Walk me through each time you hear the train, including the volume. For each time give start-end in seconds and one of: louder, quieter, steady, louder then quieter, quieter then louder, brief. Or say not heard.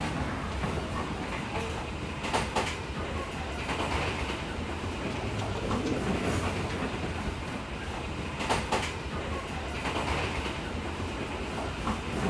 0.0-12.2 steady.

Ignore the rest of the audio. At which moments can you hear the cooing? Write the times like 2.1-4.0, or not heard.
5.0-6.9.